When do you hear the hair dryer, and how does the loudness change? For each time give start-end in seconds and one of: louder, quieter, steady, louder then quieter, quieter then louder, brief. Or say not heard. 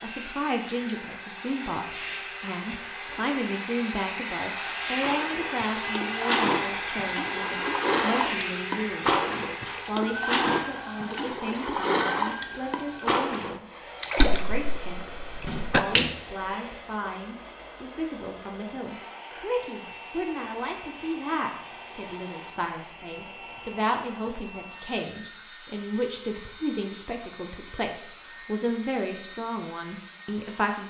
0.0-30.8 quieter.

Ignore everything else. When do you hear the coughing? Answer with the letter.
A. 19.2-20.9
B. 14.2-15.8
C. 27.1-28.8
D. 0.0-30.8
B.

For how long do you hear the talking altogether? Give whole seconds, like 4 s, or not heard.
31 s.